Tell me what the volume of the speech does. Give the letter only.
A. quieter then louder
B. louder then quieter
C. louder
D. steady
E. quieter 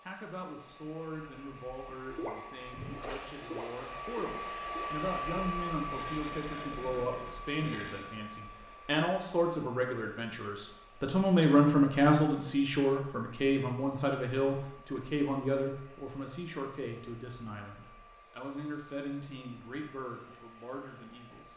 B.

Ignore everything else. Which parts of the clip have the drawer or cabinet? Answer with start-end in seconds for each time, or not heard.
not heard.